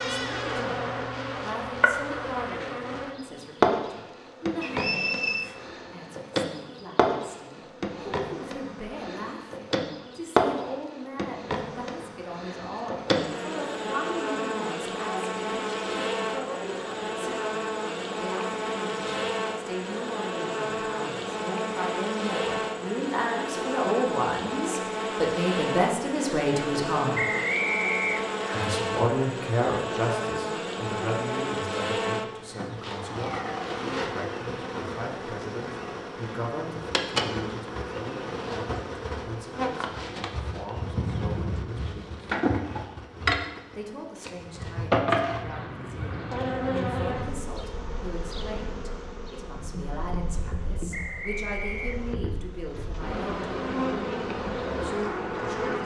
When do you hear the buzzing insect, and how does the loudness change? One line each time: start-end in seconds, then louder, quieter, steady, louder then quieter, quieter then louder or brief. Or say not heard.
0.0-55.8 steady.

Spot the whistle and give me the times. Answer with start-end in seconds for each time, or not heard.
4.6-5.5, 27.1-28.7, 50.9-52.1.